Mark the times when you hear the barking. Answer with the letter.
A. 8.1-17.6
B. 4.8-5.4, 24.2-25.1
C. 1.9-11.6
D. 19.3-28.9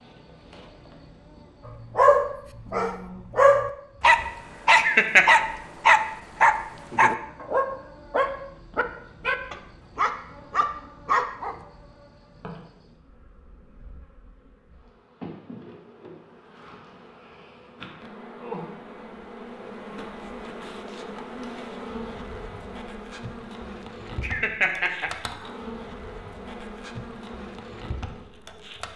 C.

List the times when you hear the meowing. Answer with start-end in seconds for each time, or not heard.
not heard.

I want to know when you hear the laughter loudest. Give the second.
5 s.